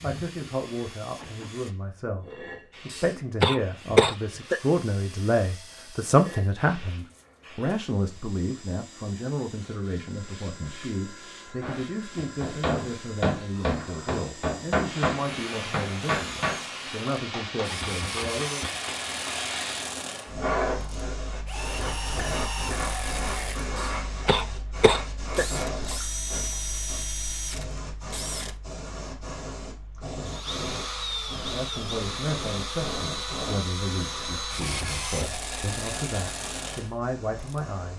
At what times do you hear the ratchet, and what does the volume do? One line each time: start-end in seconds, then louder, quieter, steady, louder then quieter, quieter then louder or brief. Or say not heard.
not heard.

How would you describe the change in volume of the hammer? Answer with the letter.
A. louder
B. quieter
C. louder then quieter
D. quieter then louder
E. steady
B.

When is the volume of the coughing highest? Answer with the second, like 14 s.
4 s.